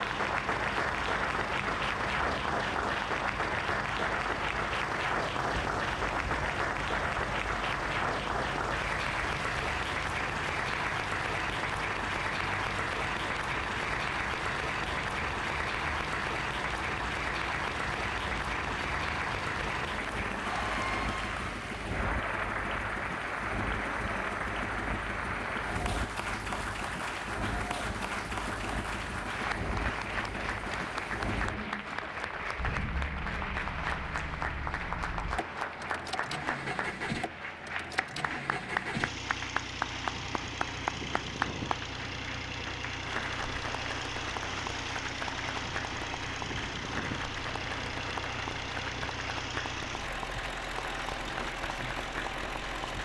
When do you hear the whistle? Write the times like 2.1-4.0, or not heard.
not heard.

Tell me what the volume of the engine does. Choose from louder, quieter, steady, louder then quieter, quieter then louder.
steady.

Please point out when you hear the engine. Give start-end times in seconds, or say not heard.
0.0-52.9.